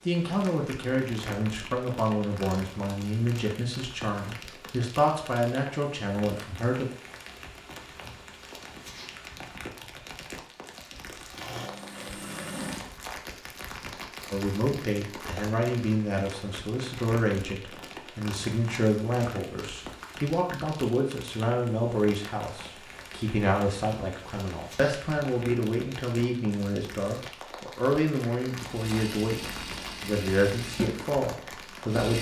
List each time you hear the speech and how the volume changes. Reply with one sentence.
The speech can be heard from 0.1 to 6.8 s, at a steady volume; and from 14.3 to 32.1 s, at a steady volume.